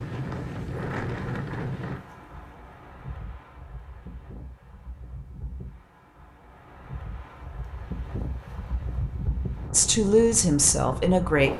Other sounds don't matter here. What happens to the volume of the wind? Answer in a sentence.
The volume of the wind goes down, then up.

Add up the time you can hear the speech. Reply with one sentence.
You can hear the speech for 2 seconds altogether.